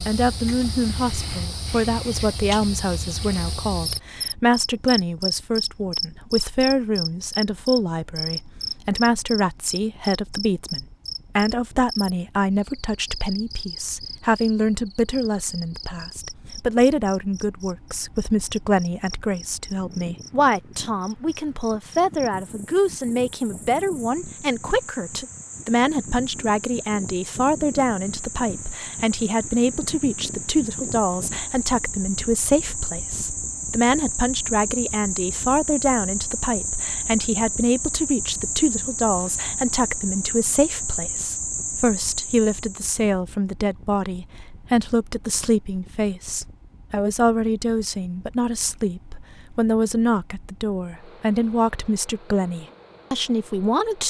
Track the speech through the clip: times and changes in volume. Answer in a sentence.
The speech can be heard from 0.1 to 54.0 s, at a steady volume.